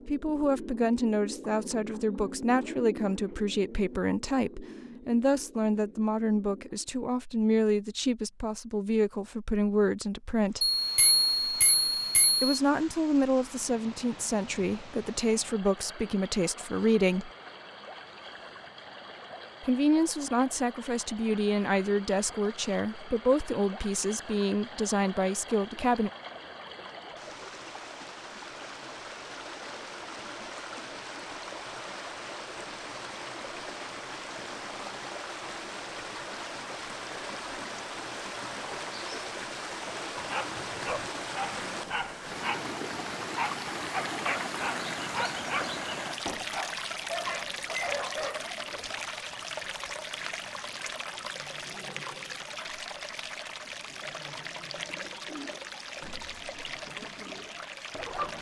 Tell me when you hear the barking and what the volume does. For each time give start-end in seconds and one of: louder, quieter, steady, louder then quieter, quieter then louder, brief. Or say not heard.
40.1-48.5 steady.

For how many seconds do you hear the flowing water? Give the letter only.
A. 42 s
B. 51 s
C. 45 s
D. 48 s
D.